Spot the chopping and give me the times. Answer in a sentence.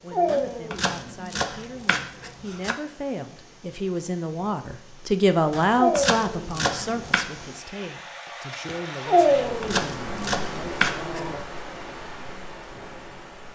The chopping can be heard from 0.2 to 2.8 s, from 5.5 to 7.2 s and from 9.2 to 11.2 s.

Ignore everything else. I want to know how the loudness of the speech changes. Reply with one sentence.
The volume of the speech goes up, then down.